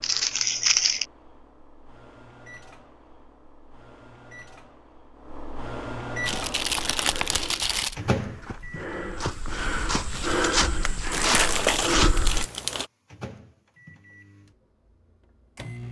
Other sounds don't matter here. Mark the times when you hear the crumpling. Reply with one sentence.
You can hear the crumpling from 0.0 to 1.1 s, from 6.2 to 8.0 s and from 11.1 to 12.8 s.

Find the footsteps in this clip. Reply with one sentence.
You can hear the footsteps from 6.2 to 12.4 s.